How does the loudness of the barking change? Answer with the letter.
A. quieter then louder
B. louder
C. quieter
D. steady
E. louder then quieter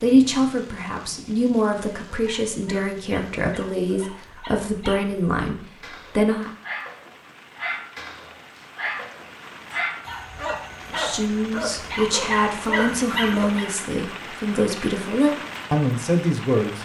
B.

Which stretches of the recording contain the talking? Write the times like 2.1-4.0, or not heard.
0.0-6.5, 10.9-16.8.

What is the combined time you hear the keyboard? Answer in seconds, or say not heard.
not heard.